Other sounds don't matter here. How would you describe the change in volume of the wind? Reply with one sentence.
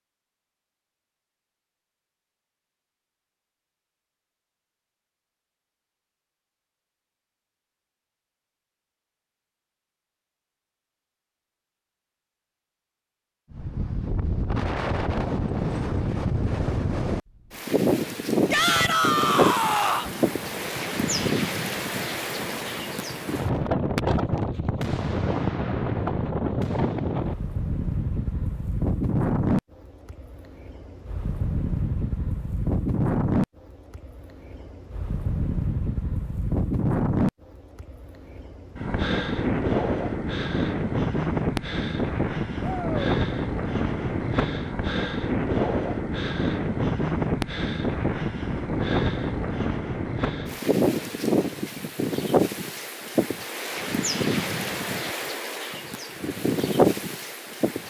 The loudness of the wind stays about the same.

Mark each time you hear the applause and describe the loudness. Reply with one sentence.
The applause can't be heard in this clip.